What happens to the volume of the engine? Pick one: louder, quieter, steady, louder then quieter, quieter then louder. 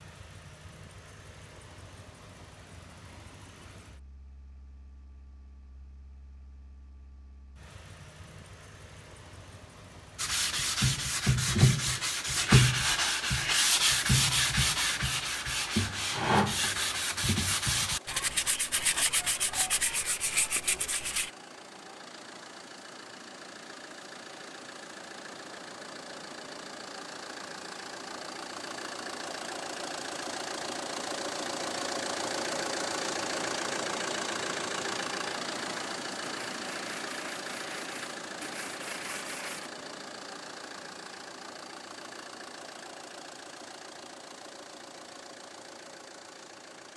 louder then quieter.